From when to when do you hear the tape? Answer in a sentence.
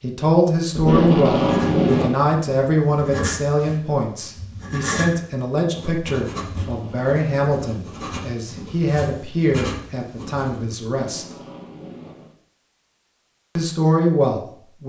The tape can be heard from 0.7 to 2.1 s, from 6.6 to 7.2 s and from 10.9 to 12.3 s.